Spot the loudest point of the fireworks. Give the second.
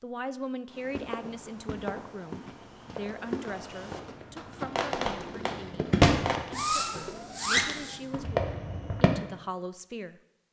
6 s.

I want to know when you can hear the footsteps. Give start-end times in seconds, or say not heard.
0.8-8.3.